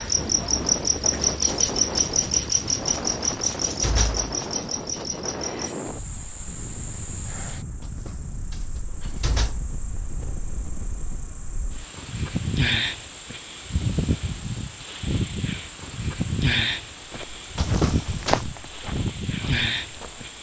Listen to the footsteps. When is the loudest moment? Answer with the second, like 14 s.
18 s.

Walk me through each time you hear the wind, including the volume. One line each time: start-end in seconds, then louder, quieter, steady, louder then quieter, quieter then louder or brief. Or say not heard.
0.0-20.3 quieter then louder.